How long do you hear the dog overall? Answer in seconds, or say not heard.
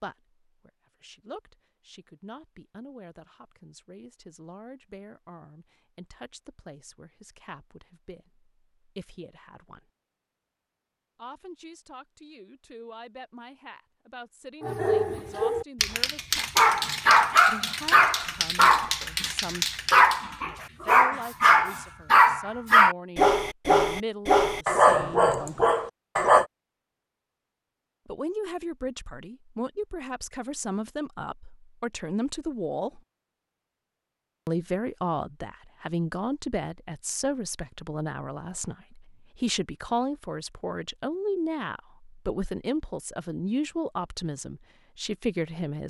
12 s.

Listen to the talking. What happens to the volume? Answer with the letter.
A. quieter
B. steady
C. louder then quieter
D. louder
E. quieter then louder
D.